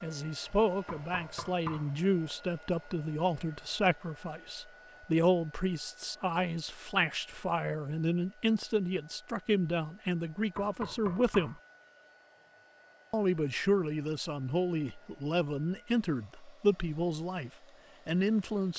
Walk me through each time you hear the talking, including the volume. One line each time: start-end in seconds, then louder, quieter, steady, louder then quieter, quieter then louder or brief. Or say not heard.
0.0-11.6 steady
13.1-18.7 steady.